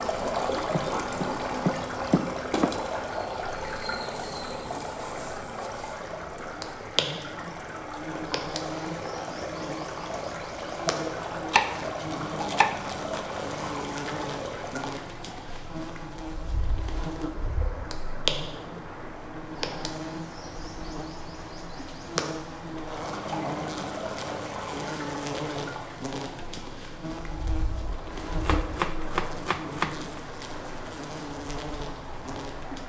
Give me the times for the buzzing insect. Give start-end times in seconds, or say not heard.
0.0-32.8.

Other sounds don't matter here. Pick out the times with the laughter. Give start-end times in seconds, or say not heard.
not heard.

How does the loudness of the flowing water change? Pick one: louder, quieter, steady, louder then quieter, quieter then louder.
quieter.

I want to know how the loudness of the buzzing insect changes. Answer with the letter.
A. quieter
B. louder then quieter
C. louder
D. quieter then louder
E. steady
E.